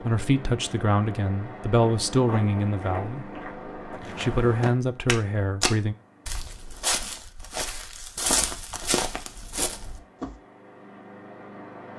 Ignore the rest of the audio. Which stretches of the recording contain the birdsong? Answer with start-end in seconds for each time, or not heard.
not heard.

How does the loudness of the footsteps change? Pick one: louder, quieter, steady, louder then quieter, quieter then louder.
louder.